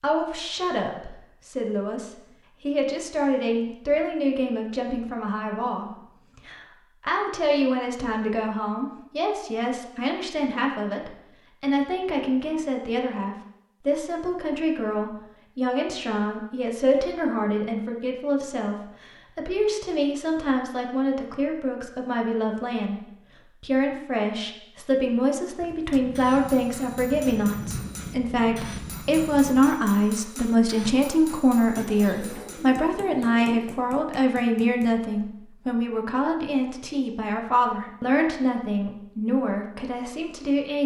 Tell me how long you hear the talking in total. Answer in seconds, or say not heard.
41 s.